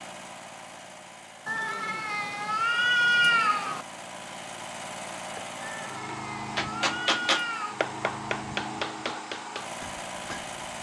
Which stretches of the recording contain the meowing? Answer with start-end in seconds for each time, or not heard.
1.4-3.9, 5.6-7.8.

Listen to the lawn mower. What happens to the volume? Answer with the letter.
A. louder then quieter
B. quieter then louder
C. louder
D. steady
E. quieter
C.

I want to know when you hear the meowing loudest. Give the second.
3 s.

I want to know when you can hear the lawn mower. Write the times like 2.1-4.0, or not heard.
0.0-10.7.